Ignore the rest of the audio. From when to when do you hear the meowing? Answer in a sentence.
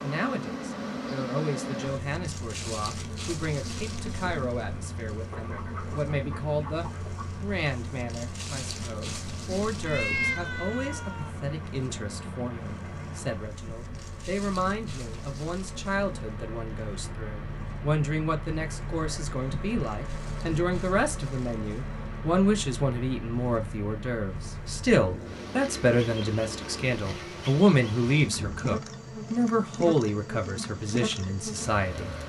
You can hear the meowing from 9.8 to 11.3 s.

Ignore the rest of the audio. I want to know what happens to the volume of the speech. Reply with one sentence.
The loudness of the speech goes up.